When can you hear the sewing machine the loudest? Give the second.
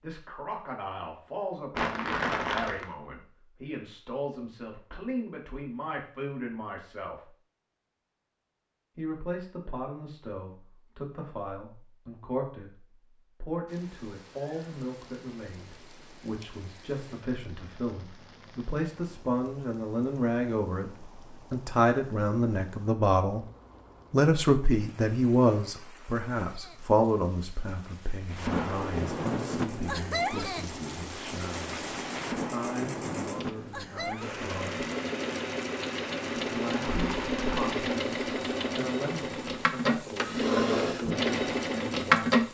42 s.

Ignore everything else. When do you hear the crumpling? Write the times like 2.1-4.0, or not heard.
1.7-3.0, 36.8-37.6.